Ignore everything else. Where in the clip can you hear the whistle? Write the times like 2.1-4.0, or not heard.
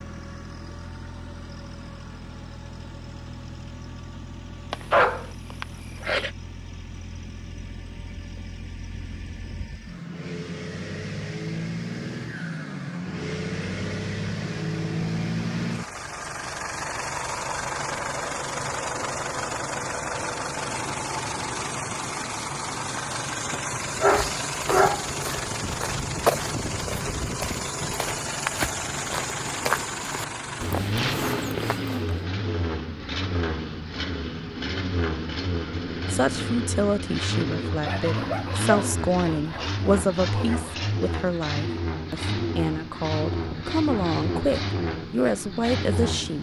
not heard.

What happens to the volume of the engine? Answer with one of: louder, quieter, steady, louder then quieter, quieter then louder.
louder.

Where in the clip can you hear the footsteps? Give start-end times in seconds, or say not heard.
23.7-32.2.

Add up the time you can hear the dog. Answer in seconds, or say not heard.
6 s.